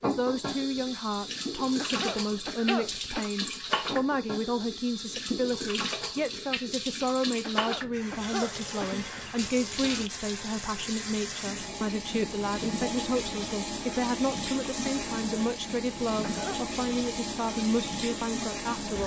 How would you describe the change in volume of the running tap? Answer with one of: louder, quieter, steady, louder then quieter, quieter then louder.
steady.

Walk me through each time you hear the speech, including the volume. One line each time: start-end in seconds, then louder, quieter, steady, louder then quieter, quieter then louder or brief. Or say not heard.
0.0-19.0 steady.